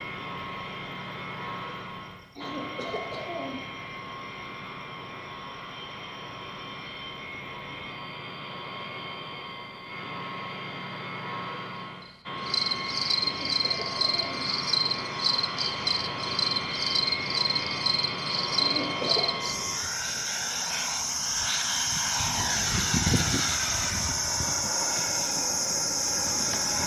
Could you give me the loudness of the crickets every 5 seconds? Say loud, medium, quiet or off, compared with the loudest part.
quiet, quiet, loud, loud, loud, loud.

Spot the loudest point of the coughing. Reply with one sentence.
The loudest moment of the coughing is at 19 seconds.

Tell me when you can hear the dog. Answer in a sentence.
You can't hear the dog here.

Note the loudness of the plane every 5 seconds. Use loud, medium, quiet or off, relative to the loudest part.
medium, medium, loud, loud, loud, loud.